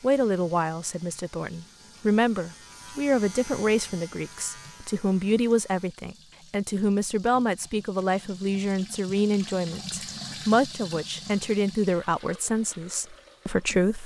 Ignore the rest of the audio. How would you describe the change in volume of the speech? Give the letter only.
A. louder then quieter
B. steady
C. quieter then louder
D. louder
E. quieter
B.